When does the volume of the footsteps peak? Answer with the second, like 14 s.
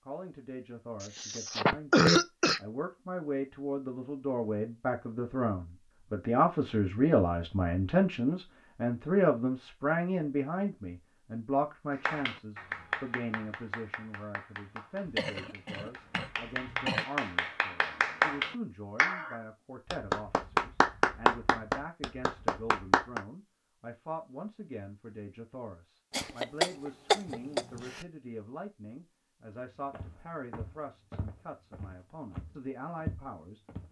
33 s.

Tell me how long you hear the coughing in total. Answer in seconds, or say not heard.
5 s.